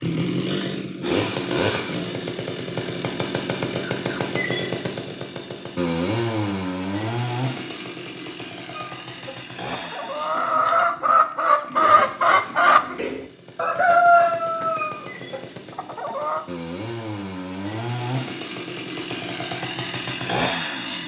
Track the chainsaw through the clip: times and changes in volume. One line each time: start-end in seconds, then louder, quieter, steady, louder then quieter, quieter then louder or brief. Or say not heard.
0.0-21.0 quieter then louder.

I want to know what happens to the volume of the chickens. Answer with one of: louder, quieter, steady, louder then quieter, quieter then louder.
louder then quieter.